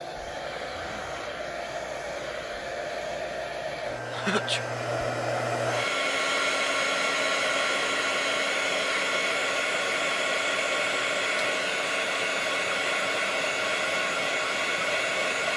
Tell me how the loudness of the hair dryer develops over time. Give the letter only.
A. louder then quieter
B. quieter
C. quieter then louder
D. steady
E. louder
E.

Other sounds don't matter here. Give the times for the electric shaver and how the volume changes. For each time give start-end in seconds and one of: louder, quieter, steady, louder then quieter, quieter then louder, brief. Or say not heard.
not heard.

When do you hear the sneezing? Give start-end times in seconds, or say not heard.
4.0-4.6.